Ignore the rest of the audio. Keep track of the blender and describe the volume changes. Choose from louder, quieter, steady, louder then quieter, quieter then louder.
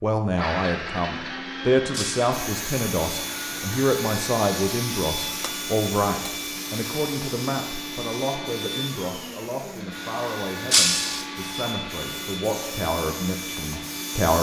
steady.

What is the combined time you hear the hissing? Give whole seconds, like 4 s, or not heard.
12 s.